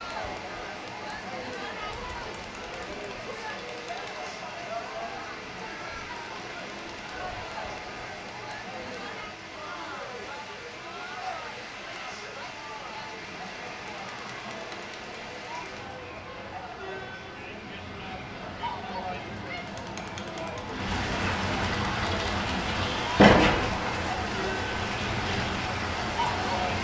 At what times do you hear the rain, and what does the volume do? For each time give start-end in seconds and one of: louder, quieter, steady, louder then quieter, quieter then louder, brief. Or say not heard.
0.0-26.8 louder.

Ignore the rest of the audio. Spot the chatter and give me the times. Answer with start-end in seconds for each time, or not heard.
0.0-26.8.